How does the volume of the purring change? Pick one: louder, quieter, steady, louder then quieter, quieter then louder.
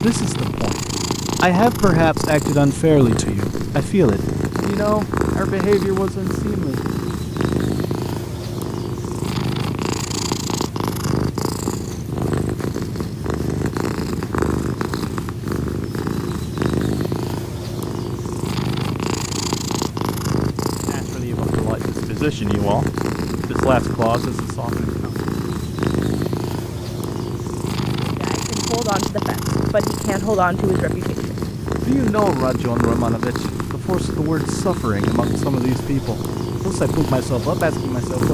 steady.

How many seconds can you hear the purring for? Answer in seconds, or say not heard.
38 s.